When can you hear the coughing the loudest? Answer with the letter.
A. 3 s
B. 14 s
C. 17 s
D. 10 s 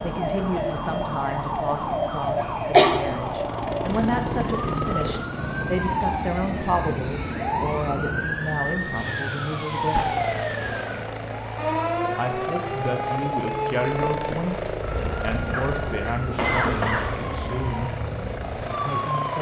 A.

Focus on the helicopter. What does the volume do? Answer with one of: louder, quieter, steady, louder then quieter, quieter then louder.
steady.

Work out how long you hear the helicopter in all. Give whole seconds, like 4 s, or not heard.
19 s.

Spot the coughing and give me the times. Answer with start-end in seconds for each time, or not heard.
2.4-3.0, 15.5-17.1.